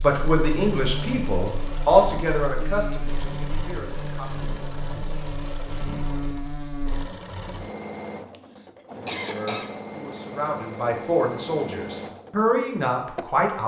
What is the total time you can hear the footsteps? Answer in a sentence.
The footsteps can't be heard in this clip.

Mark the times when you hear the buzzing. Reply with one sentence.
You can hear the buzzing from 0.0 to 7.0 s.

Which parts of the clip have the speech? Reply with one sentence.
The speech can be heard from 0.0 to 4.5 s and from 9.2 to 13.6 s.